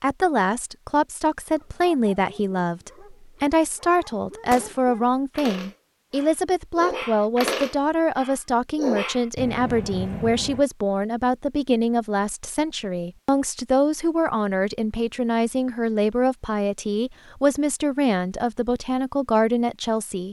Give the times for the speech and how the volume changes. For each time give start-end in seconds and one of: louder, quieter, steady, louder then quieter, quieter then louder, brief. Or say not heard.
0.0-20.2 steady.